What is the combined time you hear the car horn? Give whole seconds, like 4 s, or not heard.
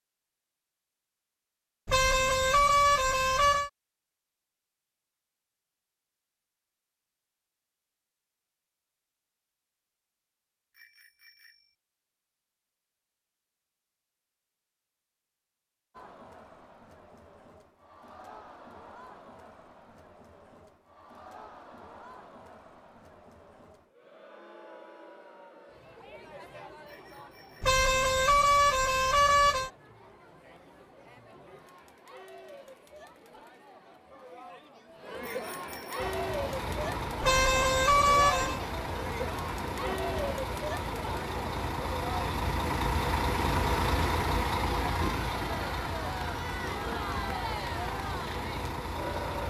5 s.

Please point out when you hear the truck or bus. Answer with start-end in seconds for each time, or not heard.
36.0-49.4.